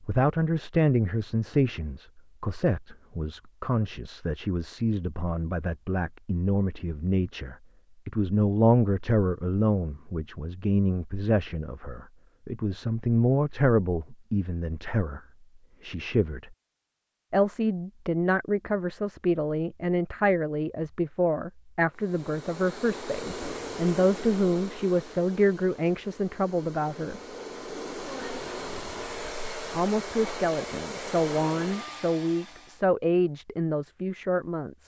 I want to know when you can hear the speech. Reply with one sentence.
You can hear the speech from 0.0 to 15.2 s, from 15.8 to 16.6 s, from 17.3 to 27.2 s and from 29.7 to 34.8 s.